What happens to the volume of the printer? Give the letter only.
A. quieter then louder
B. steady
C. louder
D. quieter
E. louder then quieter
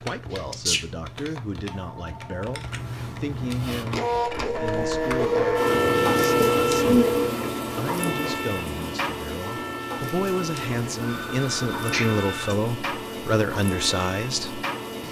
D.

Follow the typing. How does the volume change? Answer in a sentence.
The loudness of the typing goes up, then down.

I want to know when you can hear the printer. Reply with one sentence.
The printer can be heard from 3.5 to 15.0 s.